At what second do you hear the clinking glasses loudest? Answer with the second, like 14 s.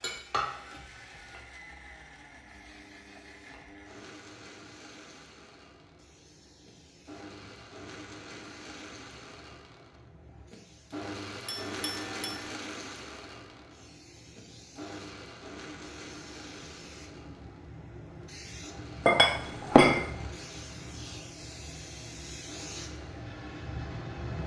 20 s.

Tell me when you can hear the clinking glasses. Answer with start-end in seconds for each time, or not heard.
0.0-0.8, 11.4-12.5, 19.1-20.1.